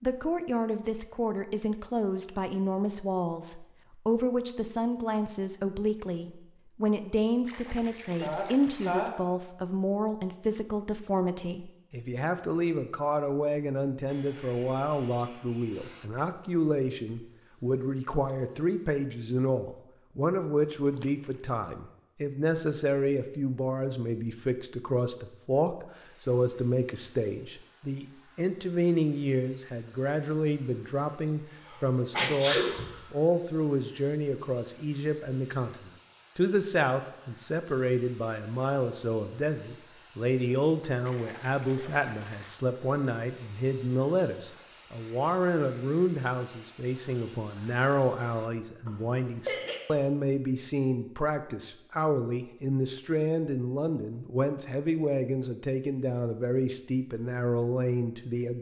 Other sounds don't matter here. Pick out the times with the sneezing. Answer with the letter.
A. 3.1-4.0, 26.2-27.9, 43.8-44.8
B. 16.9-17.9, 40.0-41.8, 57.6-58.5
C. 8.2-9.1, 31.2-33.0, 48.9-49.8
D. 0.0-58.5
C.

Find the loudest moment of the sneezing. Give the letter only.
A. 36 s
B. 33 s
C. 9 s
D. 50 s
B.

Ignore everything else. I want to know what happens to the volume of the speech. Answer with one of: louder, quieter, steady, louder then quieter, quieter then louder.
steady.